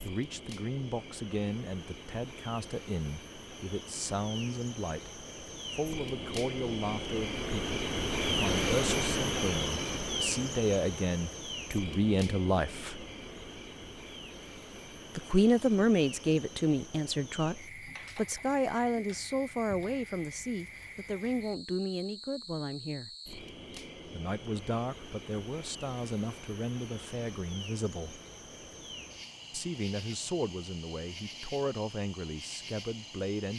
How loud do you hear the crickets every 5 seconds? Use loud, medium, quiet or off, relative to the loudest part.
quiet, loud, medium, quiet, quiet, quiet, quiet.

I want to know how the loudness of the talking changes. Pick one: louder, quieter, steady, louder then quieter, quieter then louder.
louder then quieter.